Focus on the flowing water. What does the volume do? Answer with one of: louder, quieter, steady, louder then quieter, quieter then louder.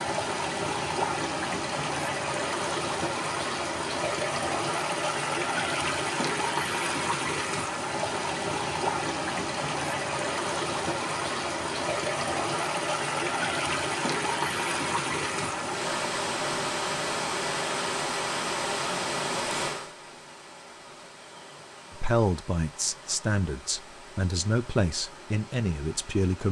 quieter.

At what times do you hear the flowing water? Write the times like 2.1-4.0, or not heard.
0.0-26.4.